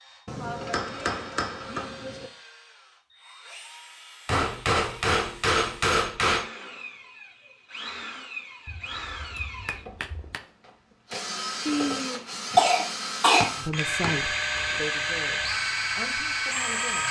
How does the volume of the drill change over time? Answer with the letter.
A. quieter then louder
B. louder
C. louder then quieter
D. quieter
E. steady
B.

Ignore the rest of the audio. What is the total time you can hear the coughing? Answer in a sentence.
You can hear the coughing for 2 seconds altogether.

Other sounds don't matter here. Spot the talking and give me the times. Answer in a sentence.
You can hear the talking from 13.6 to 17.0 s.